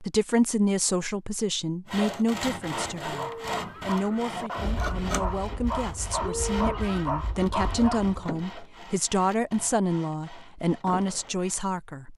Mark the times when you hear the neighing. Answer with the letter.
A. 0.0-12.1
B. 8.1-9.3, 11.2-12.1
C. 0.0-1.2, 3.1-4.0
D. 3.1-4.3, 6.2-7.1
D.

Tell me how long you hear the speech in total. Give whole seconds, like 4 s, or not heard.
12 s.